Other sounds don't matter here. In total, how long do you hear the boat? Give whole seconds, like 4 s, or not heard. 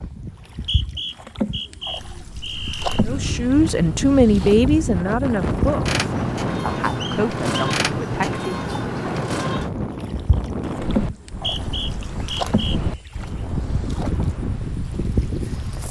16 s.